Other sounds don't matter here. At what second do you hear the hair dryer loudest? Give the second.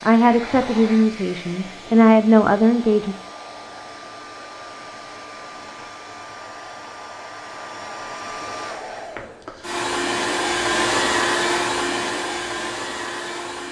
11 s.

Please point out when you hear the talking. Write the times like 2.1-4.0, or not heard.
0.0-3.1.